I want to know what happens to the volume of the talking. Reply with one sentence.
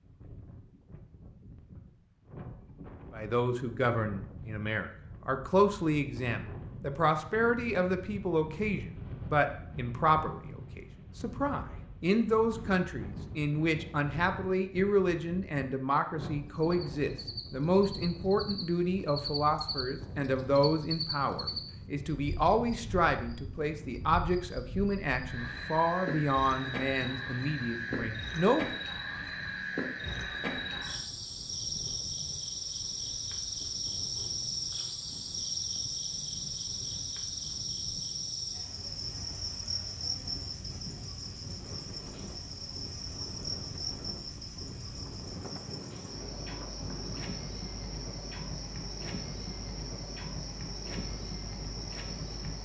The volume of the talking stays about the same.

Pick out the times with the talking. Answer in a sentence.
You can hear the talking from 3.1 to 28.8 s.